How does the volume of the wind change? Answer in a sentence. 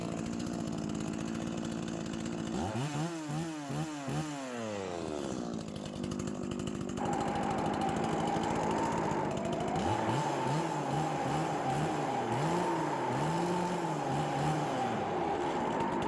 The volume of the wind stays about the same.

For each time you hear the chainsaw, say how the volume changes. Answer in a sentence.
The chainsaw can be heard from 0.0 to 16.0 s, at a steady volume.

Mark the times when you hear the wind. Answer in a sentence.
The wind can be heard from 7.0 to 16.0 s.